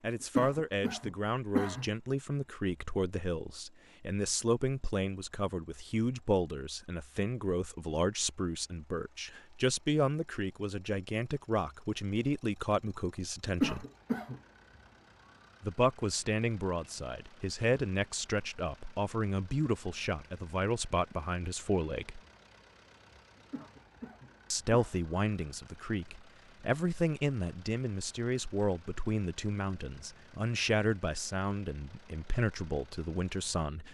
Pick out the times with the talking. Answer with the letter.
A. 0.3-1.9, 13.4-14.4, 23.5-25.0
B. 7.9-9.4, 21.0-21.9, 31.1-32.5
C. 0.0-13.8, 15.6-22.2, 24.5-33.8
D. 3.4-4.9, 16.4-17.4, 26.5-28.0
C.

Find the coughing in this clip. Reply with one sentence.
You can hear the coughing from 0.3 to 1.9 s, from 13.4 to 14.4 s and from 23.5 to 25.0 s.